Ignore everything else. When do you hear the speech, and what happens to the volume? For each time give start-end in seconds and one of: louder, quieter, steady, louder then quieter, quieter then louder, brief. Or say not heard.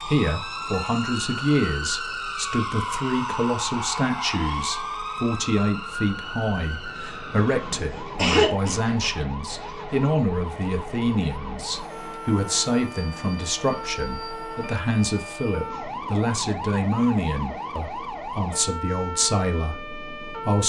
0.1-20.6 steady.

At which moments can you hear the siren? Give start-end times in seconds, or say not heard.
0.0-20.6.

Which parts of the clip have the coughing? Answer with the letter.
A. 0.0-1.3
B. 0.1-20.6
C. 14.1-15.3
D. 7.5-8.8
D.